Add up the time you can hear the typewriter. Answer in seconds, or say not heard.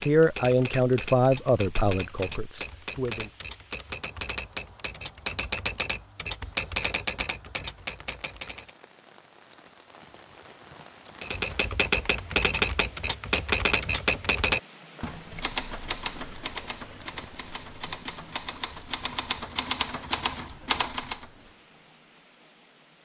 19 s.